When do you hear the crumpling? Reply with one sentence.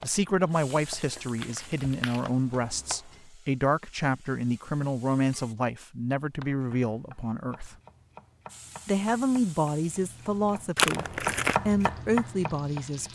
The crumpling can be heard from 0.7 to 2.2 s and from 10.8 to 11.6 s.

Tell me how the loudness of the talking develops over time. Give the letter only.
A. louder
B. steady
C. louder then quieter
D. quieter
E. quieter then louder
B.